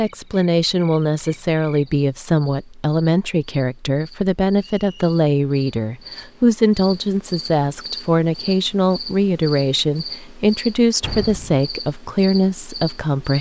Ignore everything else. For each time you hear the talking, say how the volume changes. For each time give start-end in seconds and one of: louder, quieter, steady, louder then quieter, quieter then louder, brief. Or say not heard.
0.0-13.3 steady.